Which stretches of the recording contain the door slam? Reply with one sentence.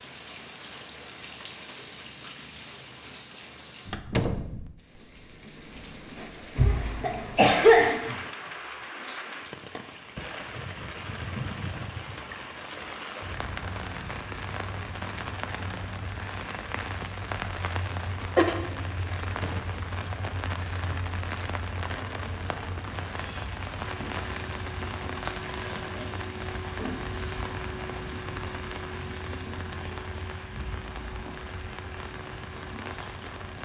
The door slam can be heard from 3.9 to 4.5 s and from 19.2 to 19.8 s.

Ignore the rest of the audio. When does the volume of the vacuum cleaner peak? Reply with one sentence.
The loudest moment of the vacuum cleaner is at 27 seconds.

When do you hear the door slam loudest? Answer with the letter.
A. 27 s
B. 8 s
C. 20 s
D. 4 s
D.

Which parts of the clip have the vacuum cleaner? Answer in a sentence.
You can hear the vacuum cleaner from 23.8 to 33.6 s.